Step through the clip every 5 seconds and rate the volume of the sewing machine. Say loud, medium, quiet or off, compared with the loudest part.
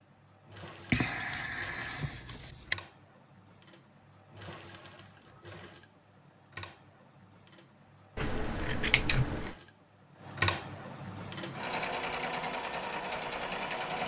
quiet, quiet, loud.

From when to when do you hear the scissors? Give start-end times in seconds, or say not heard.
0.9-2.8, 8.2-9.6.